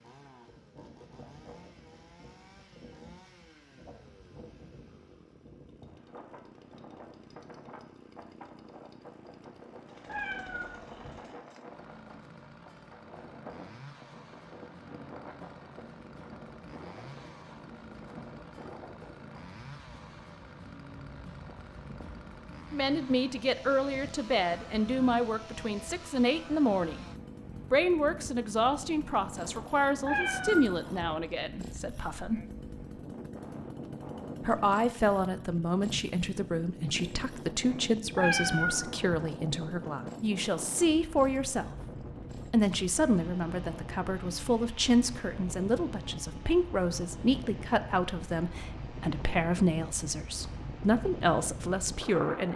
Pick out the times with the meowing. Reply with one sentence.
You can hear the meowing from 10.1 to 11.2 s, from 30.0 to 31.1 s and from 38.1 to 39.0 s.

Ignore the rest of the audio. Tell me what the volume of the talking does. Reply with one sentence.
The volume of the talking stays about the same.